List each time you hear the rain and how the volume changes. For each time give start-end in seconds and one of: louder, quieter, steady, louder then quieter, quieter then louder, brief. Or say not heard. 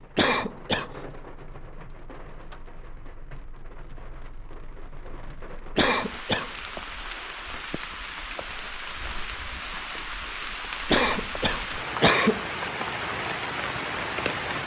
0.0-14.6 louder.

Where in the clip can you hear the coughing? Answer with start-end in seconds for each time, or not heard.
0.1-0.9, 5.8-6.5, 10.8-12.4.